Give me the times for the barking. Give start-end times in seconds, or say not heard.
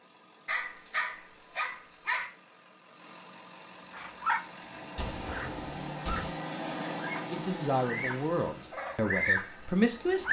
0.5-2.3.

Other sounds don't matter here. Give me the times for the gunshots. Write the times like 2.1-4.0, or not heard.
5.0-6.3.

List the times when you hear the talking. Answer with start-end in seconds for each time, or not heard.
7.3-10.2.